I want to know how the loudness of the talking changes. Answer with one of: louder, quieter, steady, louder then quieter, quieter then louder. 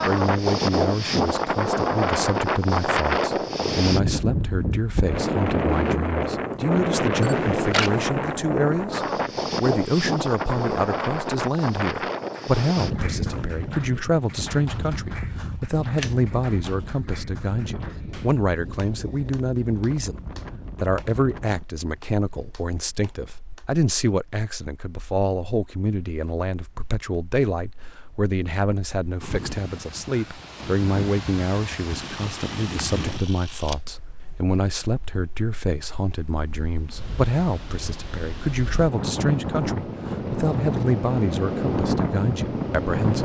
steady.